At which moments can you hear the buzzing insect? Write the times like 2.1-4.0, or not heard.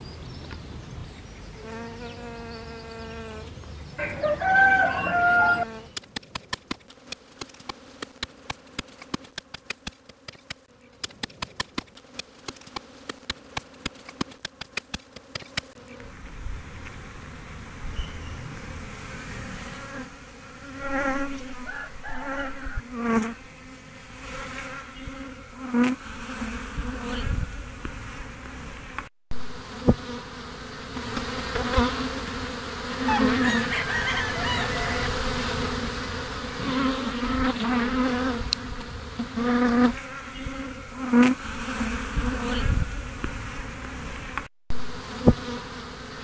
0.0-46.1.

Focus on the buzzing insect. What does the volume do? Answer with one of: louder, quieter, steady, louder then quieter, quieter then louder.
louder.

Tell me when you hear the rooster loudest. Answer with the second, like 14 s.
5 s.